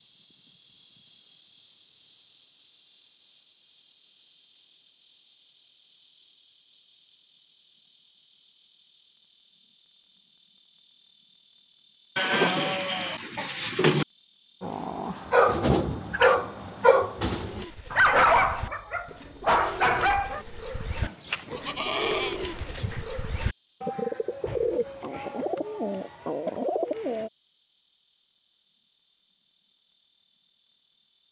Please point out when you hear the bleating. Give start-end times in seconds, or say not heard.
12.2-14.1, 21.0-23.1.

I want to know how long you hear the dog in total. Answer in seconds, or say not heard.
6 s.